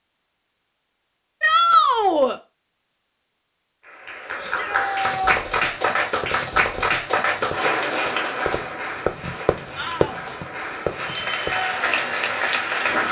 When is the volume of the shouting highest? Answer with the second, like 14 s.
2 s.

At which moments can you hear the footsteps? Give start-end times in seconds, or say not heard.
not heard.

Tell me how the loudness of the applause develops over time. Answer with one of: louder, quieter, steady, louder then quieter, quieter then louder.
quieter then louder.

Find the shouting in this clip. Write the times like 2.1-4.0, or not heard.
1.4-2.4, 4.4-5.3, 9.8-10.3.